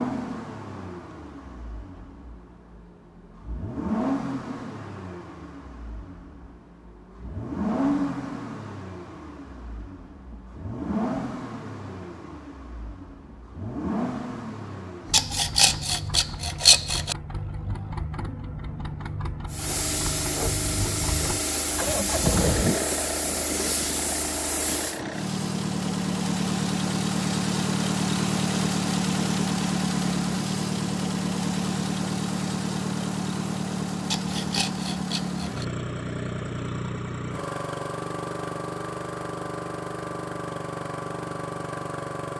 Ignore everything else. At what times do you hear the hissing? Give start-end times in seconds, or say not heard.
19.4-25.0.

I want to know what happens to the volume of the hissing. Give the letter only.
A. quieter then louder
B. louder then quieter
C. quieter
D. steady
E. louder
D.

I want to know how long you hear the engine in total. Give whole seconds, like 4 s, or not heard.
42 s.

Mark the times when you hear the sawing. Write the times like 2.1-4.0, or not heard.
15.1-17.1, 34.1-35.6.